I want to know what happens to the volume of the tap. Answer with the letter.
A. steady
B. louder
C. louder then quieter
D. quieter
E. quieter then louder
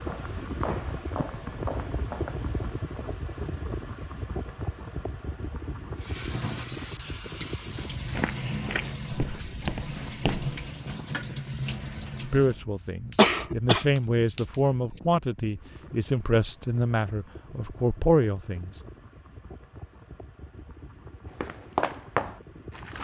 A.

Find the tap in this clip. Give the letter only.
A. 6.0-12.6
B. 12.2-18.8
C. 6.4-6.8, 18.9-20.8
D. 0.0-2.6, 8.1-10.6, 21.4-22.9
A.